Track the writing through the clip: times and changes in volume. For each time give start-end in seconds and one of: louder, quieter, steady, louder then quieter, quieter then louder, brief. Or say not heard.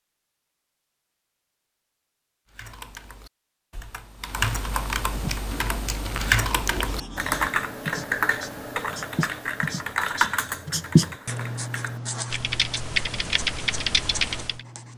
5.5-14.9 louder then quieter.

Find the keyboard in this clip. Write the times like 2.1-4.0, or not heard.
2.5-14.6.